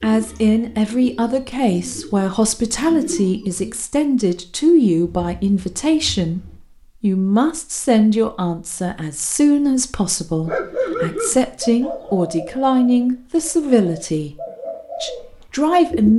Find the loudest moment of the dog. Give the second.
11 s.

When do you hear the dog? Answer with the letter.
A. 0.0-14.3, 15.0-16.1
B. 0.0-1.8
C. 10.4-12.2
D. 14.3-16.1
C.